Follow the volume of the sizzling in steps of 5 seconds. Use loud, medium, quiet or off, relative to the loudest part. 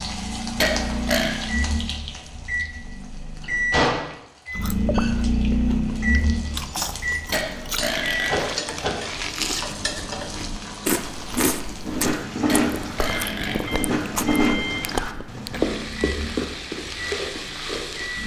medium, medium, loud, loud.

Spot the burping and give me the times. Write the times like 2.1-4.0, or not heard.
0.6-1.4, 7.3-8.3, 12.4-13.6.